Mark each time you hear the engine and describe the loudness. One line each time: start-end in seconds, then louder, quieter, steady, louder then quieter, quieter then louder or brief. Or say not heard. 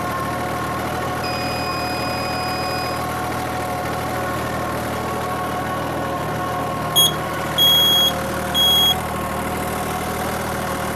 0.0-10.9 steady.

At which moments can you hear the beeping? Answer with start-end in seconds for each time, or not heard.
1.2-3.0, 7.0-8.9.